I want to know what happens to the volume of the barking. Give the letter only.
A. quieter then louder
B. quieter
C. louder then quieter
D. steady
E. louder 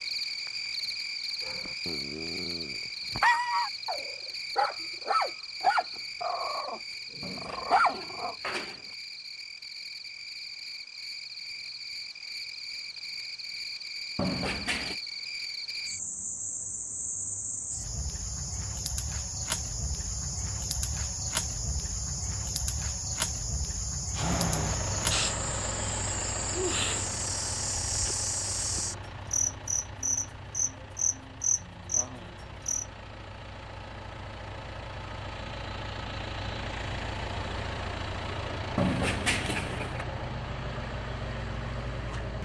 E.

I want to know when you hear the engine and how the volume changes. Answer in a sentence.
You can hear the engine from 24.1 to 42.3 s, getting quieter then louder.